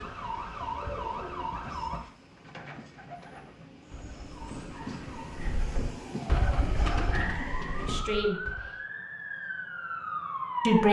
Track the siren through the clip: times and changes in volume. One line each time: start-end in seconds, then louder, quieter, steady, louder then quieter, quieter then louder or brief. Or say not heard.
0.0-2.0 brief
4.3-10.8 louder.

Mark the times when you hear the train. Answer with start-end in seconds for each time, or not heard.
0.0-8.2.